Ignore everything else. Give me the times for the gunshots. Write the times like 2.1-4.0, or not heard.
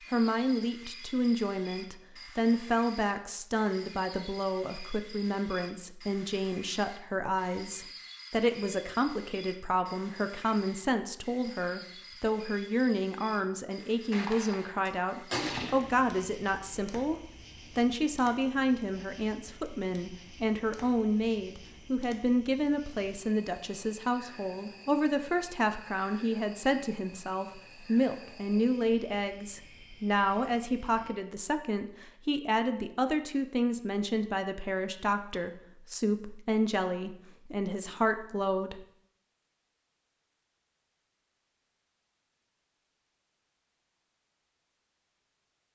14.1-16.1.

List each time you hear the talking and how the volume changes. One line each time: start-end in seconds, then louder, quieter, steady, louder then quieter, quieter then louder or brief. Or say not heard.
0.1-38.9 steady.